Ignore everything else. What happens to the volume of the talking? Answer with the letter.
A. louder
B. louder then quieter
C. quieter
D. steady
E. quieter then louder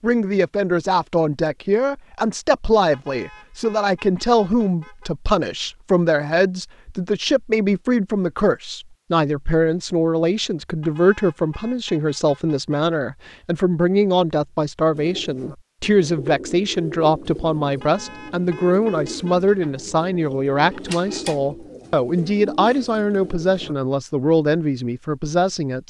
D.